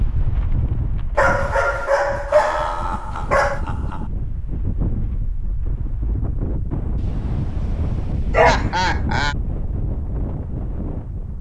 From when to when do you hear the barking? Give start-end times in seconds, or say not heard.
1.1-3.6, 7.0-8.8.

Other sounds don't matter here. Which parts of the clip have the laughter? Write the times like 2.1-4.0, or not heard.
2.2-4.1, 8.3-9.3.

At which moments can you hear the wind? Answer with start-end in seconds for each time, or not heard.
0.0-11.3.